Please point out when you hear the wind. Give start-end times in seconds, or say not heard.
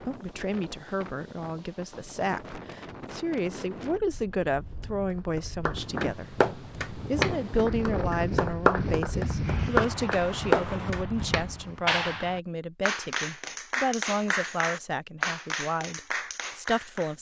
0.0-11.9.